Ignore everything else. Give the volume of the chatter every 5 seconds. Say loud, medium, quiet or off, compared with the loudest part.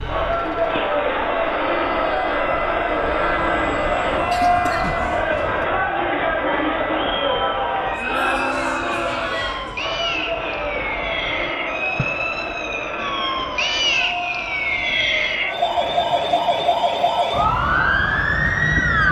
loud, loud, medium, quiet.